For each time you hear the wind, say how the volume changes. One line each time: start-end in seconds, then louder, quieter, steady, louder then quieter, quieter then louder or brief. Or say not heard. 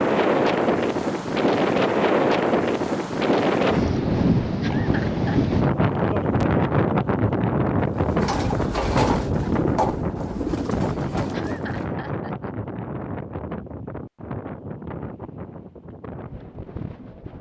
0.0-17.3 quieter.